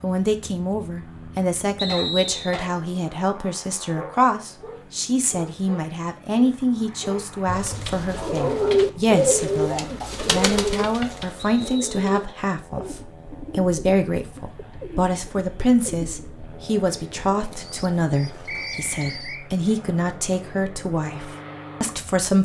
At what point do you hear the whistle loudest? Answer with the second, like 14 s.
2 s.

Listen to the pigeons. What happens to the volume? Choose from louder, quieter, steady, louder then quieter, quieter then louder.
quieter.